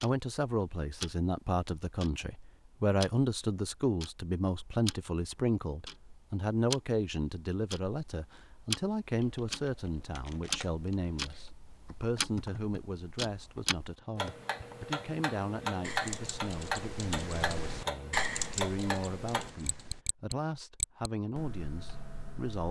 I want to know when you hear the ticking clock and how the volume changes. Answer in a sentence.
The ticking clock can be heard from 0.0 to 22.6 s, getting louder.